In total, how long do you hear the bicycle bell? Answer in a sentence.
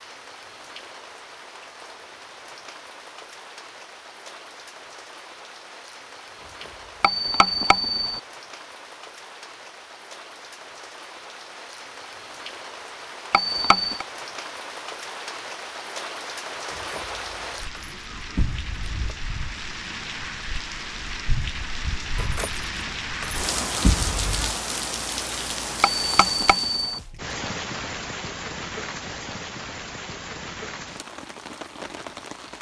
The bicycle bell can be heard for 3 seconds in total.